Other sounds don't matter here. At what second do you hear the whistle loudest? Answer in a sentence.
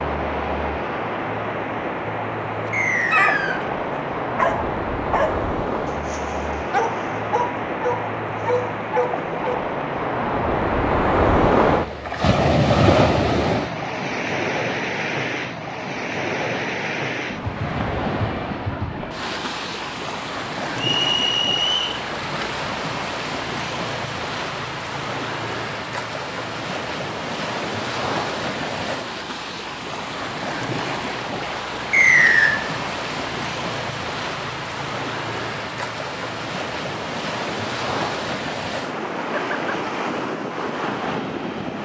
The loudest moment of the whistle is at 32 seconds.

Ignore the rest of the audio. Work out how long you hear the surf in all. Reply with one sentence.
The surf can be heard for 42 seconds in total.